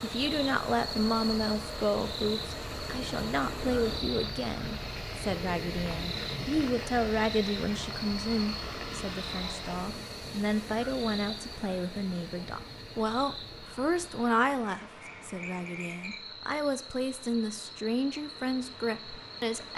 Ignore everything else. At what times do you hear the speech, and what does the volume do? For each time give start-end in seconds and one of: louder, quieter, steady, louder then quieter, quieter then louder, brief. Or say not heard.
0.0-19.7 steady.